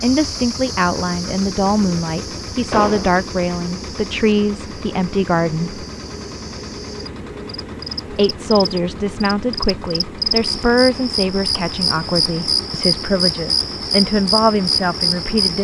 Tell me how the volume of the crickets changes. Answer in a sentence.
The volume of the crickets goes down, then up.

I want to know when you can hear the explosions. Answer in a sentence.
You can hear the explosions from 2.7 to 3.1 s.